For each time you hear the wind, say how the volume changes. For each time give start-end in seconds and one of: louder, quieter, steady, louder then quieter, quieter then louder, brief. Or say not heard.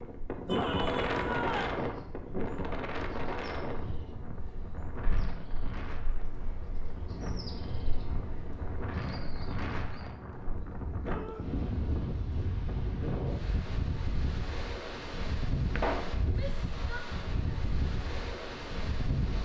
0.0-19.4 quieter then louder.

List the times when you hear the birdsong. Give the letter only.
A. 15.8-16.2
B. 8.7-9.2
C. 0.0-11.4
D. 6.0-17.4
C.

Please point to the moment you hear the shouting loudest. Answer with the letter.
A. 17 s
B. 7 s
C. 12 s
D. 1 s
D.